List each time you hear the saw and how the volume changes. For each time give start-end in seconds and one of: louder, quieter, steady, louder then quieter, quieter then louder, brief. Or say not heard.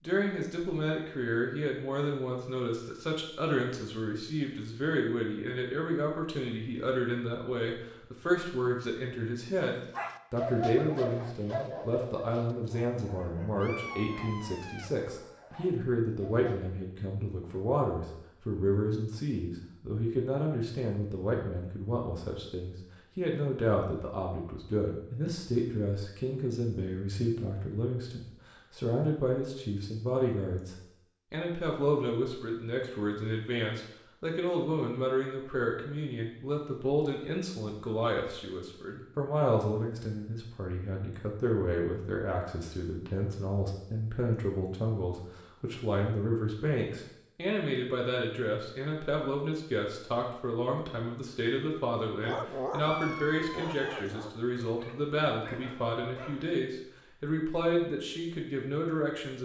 not heard.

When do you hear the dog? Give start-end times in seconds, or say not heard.
9.7-16.6, 52.2-56.5.